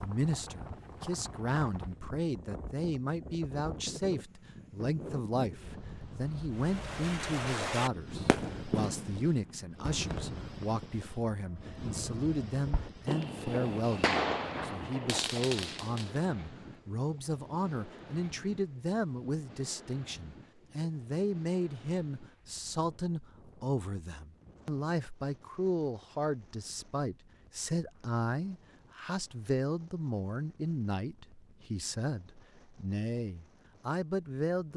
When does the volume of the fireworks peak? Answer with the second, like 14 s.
14 s.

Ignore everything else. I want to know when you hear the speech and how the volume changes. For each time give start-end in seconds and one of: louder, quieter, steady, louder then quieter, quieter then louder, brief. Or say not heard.
0.0-34.7 steady.